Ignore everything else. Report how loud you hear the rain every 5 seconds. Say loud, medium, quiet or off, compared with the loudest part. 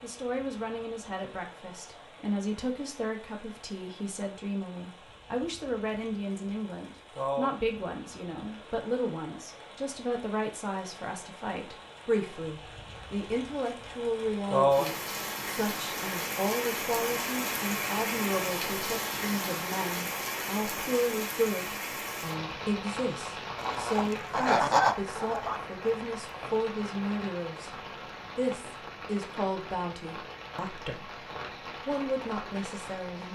quiet, medium, loud, loud, loud, medium, medium.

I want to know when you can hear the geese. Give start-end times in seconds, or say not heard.
23.6-25.6.